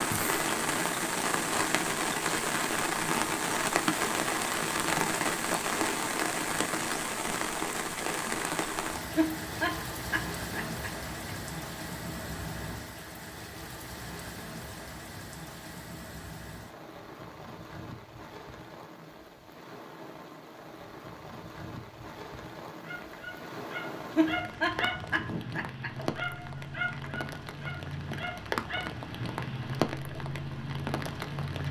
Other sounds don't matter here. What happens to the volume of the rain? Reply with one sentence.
The volume of the rain goes down, then up.